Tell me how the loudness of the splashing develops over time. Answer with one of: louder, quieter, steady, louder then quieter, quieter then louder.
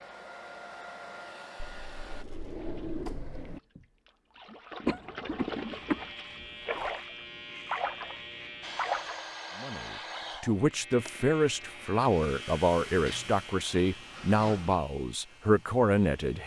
louder.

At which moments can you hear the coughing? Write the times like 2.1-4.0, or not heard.
4.8-6.0.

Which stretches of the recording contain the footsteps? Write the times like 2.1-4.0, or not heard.
not heard.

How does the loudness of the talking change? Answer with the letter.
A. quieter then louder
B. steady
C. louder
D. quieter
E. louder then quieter
B.